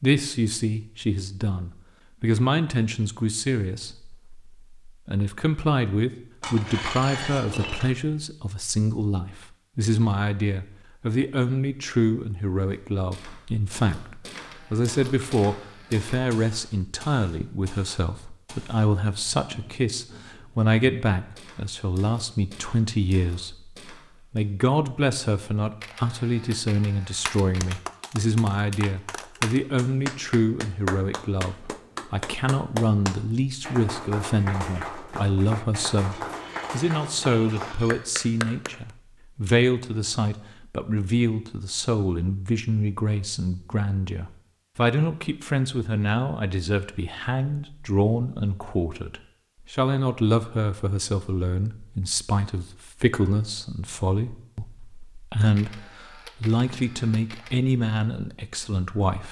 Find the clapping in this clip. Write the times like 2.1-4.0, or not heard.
27.1-38.8.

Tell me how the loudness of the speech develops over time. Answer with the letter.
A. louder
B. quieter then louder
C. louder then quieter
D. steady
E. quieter
D.